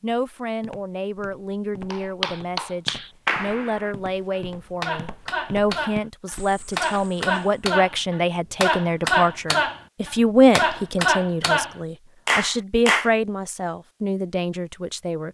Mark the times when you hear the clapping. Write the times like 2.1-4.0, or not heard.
1.9-13.1.